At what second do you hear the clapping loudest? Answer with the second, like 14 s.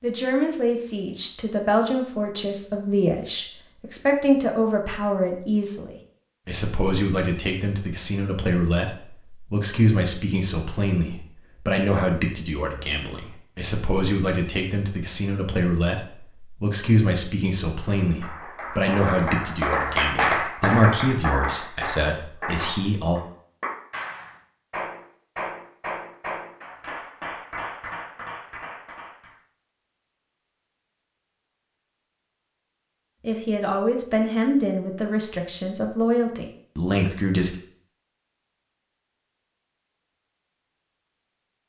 20 s.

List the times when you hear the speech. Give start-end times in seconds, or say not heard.
0.0-23.2, 33.2-37.5.